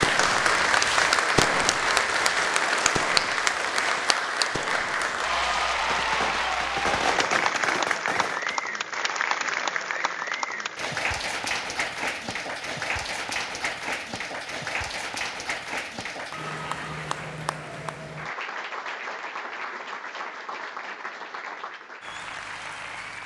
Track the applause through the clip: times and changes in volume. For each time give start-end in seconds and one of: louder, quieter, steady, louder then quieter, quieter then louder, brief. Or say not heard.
0.0-23.2 quieter.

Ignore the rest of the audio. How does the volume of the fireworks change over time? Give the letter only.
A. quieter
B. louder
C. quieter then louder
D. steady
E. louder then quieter
C.